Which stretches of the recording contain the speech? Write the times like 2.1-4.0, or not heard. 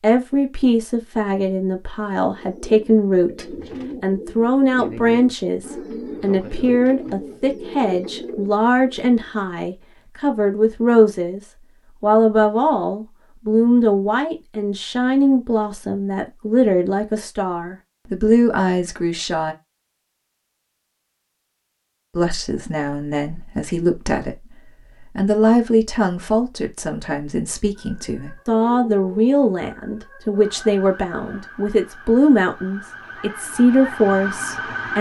0.0-11.4, 12.0-19.6, 22.1-24.4, 25.1-34.9.